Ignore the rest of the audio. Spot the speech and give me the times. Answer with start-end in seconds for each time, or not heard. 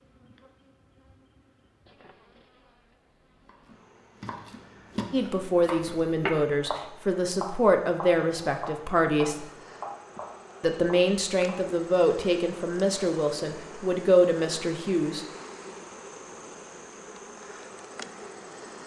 5.1-9.4, 10.6-15.2.